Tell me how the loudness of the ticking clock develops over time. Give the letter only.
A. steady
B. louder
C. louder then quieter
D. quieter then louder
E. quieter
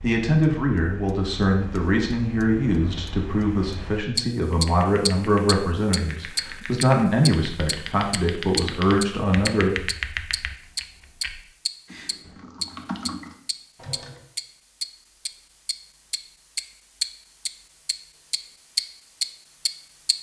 B.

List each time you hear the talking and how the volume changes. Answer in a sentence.
The talking can be heard from 0.0 to 9.7 s, at a steady volume.